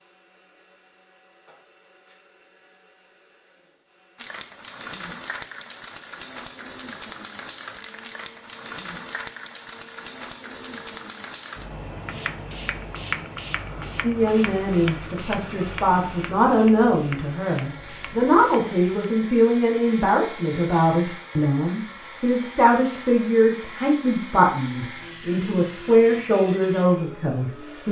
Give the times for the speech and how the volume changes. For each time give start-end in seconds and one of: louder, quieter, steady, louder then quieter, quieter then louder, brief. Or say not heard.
14.0-27.8 steady.